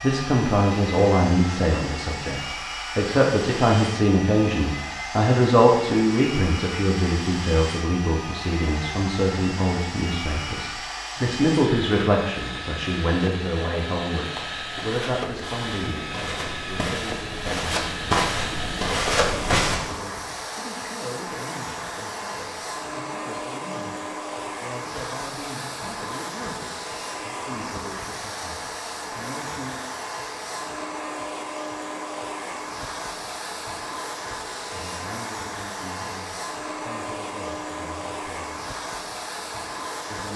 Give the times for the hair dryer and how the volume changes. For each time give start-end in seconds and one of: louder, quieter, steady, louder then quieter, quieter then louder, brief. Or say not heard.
0.0-40.3 steady.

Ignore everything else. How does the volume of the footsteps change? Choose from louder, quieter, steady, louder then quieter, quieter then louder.
louder.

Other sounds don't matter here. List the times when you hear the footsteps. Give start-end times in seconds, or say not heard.
14.3-19.8.